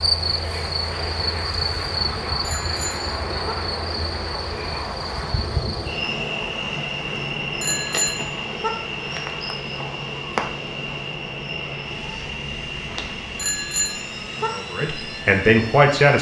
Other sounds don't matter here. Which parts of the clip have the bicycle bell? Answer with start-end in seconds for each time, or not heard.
2.4-3.5, 7.6-8.7, 13.3-14.5.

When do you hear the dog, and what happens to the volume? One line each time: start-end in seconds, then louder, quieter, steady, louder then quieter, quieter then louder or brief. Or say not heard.
not heard.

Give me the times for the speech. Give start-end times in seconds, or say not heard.
14.3-16.1.